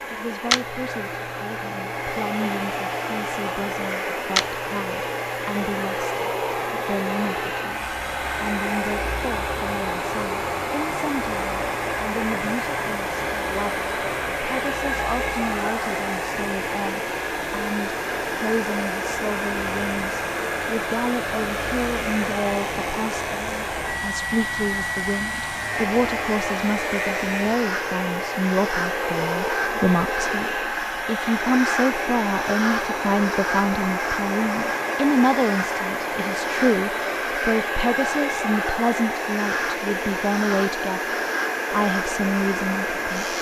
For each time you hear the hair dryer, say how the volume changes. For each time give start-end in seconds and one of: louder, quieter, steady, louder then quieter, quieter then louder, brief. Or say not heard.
0.0-43.3 steady.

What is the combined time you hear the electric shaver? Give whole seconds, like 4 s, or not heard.
43 s.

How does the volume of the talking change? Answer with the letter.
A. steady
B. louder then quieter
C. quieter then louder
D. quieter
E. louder
E.